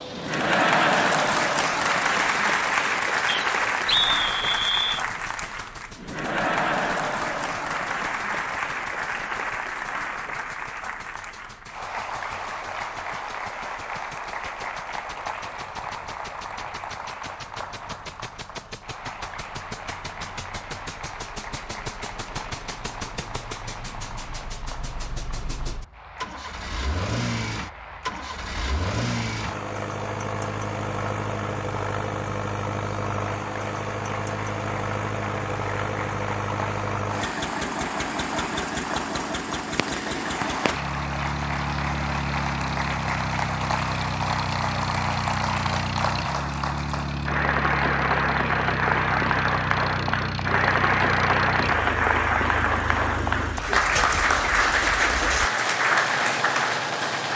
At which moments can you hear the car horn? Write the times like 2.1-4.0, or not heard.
not heard.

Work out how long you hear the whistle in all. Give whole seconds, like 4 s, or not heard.
2 s.